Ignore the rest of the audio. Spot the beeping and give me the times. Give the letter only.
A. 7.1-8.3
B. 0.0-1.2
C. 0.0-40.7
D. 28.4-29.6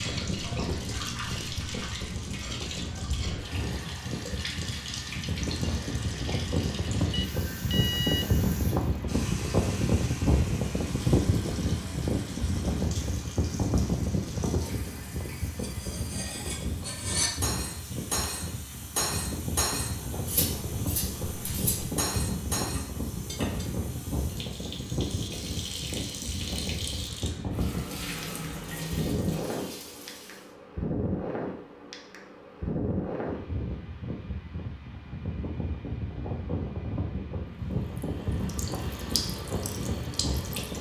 A.